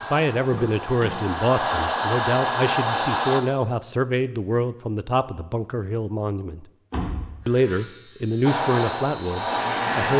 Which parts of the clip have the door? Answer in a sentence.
You can hear the door from 0.4 to 1.4 s and from 6.9 to 7.5 s.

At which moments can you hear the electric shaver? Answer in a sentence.
You can hear the electric shaver from 7.5 to 10.1 s.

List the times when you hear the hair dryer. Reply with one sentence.
You can hear the hair dryer from 0.0 to 3.4 s and from 8.4 to 10.1 s.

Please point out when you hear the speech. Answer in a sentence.
The speech can be heard from 0.0 to 6.7 s and from 7.5 to 10.1 s.